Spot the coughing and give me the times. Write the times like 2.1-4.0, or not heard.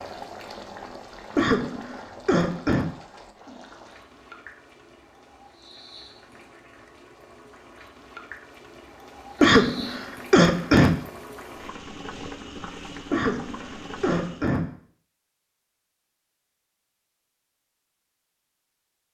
1.4-2.9, 9.4-11.0, 13.1-14.7.